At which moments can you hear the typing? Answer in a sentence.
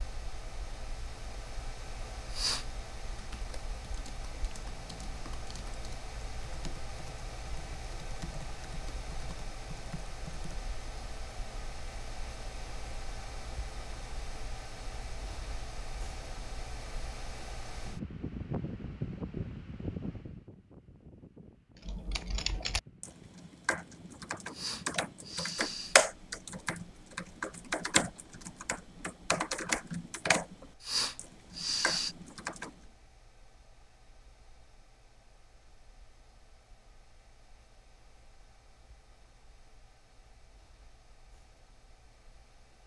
You can hear the typing from 3.1 to 10.7 s and from 21.9 to 32.7 s.